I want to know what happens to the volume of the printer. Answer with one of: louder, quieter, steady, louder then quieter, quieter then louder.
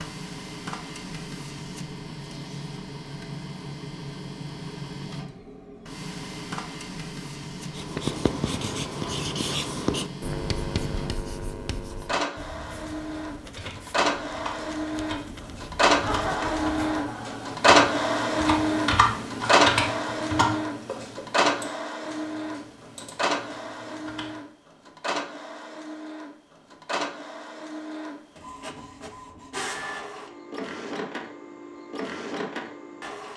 louder then quieter.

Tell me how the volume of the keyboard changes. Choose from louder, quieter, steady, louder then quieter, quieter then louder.
louder then quieter.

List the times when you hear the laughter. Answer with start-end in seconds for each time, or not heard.
16.0-17.6.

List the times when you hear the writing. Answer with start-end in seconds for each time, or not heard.
7.6-16.9.